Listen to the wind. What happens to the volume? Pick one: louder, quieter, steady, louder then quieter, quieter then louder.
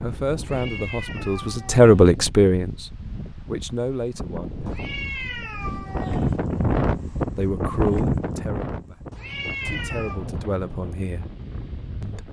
louder then quieter.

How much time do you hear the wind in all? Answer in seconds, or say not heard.
12 s.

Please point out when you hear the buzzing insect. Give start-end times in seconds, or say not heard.
not heard.